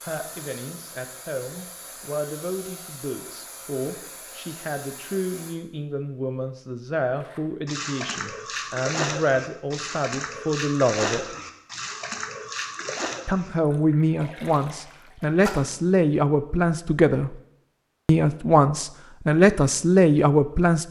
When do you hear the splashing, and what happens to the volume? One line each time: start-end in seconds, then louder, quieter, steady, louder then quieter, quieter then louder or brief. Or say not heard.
7.2-15.7 quieter.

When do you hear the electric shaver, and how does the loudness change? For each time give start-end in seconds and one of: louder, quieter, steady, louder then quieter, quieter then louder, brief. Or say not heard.
not heard.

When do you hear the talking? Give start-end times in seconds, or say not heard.
0.0-11.2, 13.2-17.4, 18.1-20.8.